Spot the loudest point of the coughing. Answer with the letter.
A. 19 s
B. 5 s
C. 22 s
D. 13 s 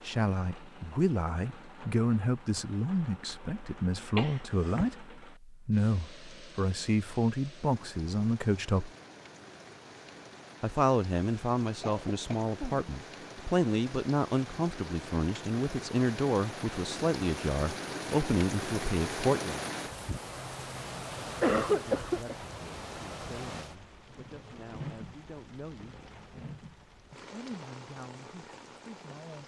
C.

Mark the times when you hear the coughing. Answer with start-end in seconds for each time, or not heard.
4.2-4.9, 11.8-12.8, 21.4-22.4.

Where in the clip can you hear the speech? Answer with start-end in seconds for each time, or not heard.
0.0-8.9, 10.6-19.7, 21.8-25.9, 27.1-29.4.